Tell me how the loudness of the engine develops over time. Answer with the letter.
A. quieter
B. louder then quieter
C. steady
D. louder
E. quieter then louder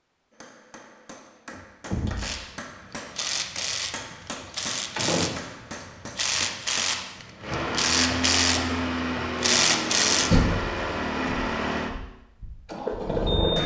D.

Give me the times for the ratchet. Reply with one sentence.
You can hear the ratchet from 2.1 to 5.5 s and from 6.2 to 10.3 s.